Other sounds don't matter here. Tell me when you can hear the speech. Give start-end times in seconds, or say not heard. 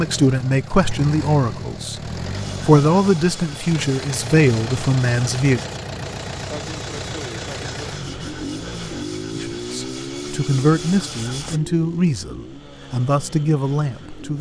0.0-5.6, 9.3-14.3.